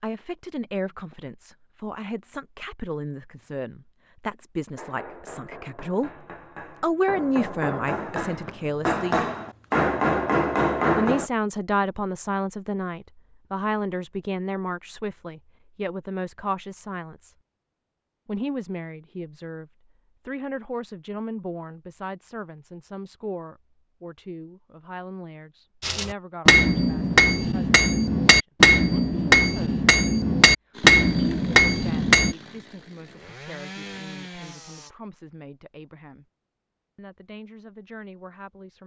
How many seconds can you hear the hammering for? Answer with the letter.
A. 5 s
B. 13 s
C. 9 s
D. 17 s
B.